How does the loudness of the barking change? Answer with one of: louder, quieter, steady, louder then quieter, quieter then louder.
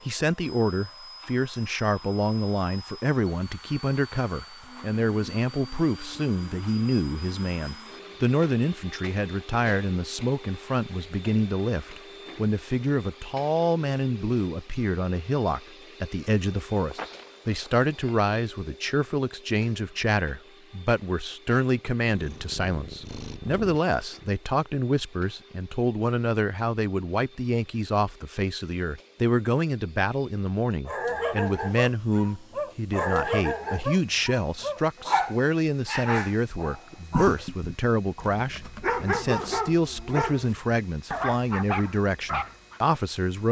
steady.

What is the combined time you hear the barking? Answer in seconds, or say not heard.
12 s.